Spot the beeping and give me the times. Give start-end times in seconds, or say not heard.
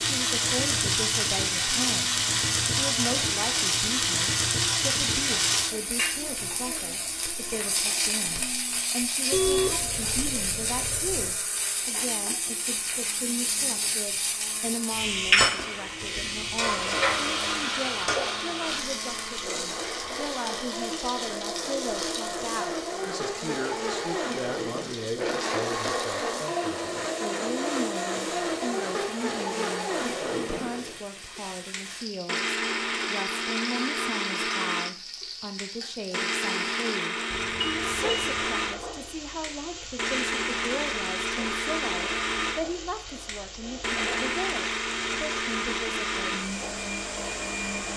9.3-11.3, 37.3-38.5.